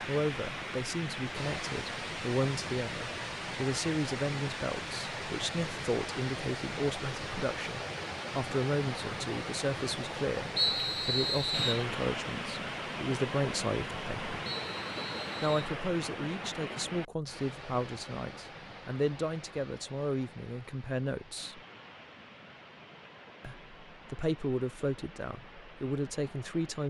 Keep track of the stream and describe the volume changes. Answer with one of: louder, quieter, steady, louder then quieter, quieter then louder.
quieter.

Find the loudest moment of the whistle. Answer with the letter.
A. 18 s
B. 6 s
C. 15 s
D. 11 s
D.